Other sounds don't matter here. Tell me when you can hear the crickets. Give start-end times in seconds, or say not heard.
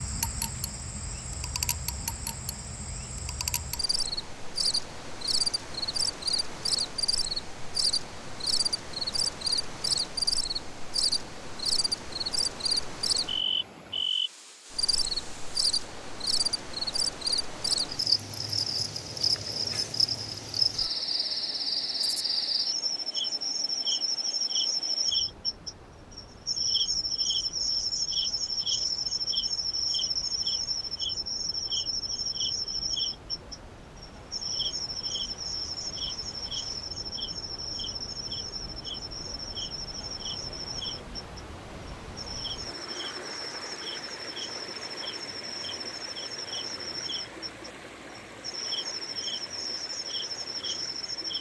0.0-51.3.